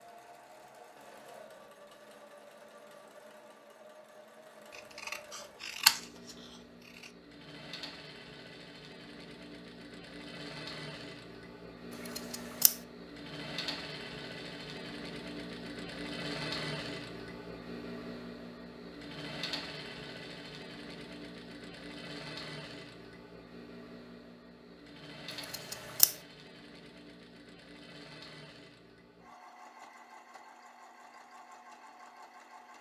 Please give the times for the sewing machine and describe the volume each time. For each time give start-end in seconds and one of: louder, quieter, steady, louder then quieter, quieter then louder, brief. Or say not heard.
0.0-32.7 louder then quieter.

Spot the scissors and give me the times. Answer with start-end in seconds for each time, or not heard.
5.0-6.0, 12.1-12.8, 25.4-26.1.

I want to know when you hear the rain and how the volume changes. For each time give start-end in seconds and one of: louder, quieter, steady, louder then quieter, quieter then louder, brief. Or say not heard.
not heard.